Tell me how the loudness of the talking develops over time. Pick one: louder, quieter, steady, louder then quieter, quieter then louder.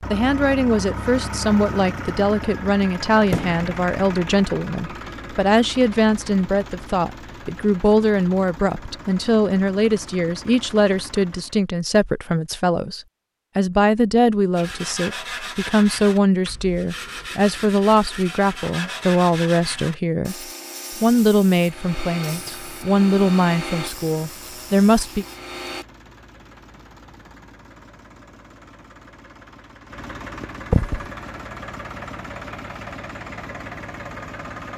steady.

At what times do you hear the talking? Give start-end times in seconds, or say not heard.
0.1-25.2.